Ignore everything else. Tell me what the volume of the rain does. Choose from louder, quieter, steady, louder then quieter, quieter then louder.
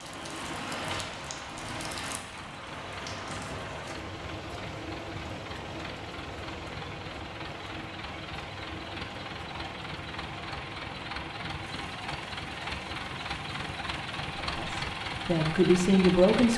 quieter.